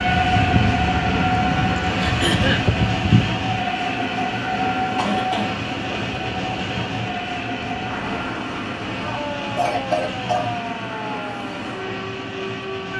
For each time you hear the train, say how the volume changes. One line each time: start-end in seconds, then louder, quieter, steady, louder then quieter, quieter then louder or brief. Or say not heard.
0.0-12.9 quieter.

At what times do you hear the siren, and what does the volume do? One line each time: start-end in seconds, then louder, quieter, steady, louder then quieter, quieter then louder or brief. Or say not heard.
0.0-12.9 quieter.